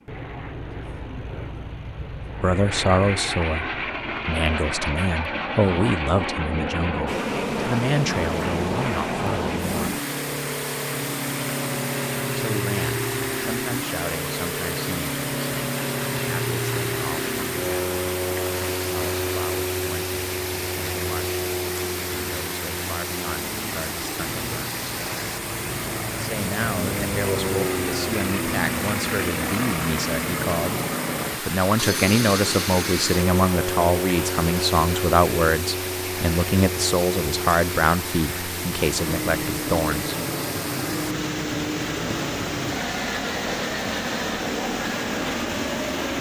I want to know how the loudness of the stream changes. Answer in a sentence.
The loudness of the stream stays about the same.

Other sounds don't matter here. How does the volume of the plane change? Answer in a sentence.
The volume of the plane stays about the same.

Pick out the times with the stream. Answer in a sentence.
You can hear the stream from 7.0 to 46.1 s.